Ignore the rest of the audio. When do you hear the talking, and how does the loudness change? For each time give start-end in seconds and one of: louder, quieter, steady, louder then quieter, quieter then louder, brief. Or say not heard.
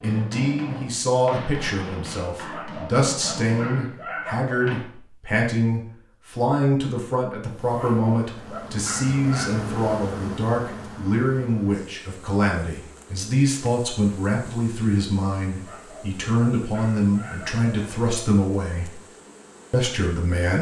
0.0-19.0 steady
19.7-20.5 brief.